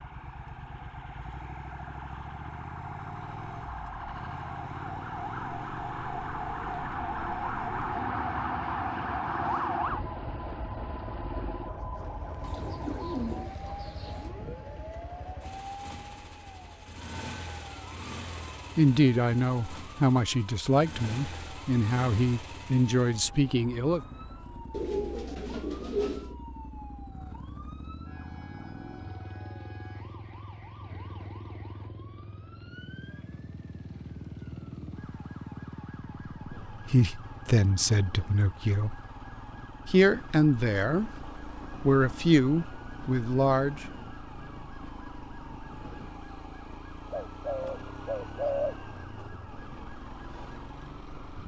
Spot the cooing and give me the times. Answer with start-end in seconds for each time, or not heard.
12.4-14.3, 24.7-26.4, 47.1-48.8.